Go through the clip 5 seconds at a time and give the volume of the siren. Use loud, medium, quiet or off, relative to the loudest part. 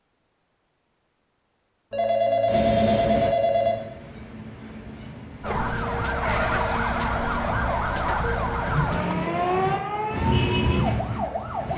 off, loud, medium.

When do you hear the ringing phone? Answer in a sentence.
The ringing phone can be heard from 1.9 to 3.8 s and from 8.7 to 9.8 s.